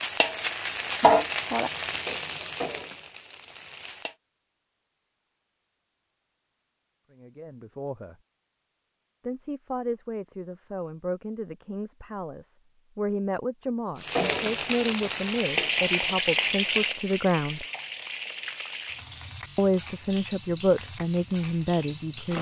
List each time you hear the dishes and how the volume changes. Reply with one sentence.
The dishes can't be heard in this clip.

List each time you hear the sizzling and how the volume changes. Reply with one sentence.
You can hear the sizzling from 0.0 to 4.2 s, getting louder then quieter; and from 13.9 to 22.3 s, getting quieter.